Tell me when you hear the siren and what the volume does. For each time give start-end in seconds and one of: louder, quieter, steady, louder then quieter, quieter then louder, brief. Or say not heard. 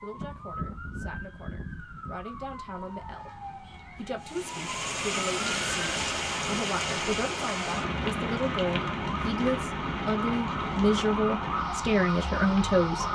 0.0-13.0 louder.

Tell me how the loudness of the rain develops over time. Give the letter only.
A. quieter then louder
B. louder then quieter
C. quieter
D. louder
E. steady
C.